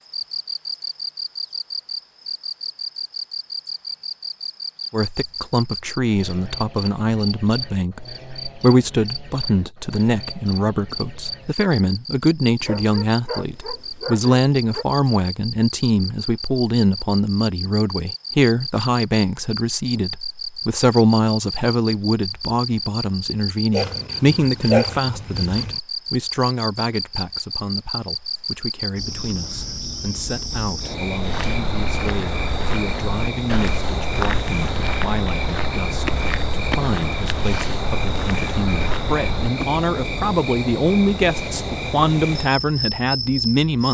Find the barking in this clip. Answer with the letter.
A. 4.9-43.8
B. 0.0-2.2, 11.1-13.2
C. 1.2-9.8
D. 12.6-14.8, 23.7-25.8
D.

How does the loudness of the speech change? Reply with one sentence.
The volume of the speech goes down, then up.